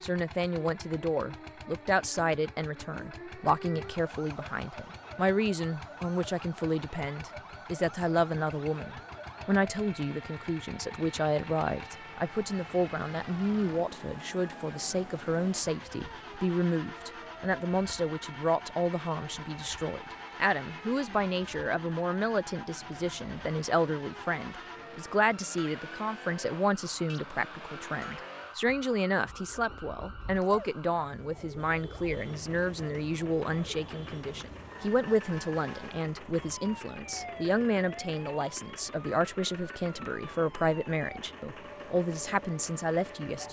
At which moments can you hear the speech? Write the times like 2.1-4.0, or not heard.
0.0-43.4.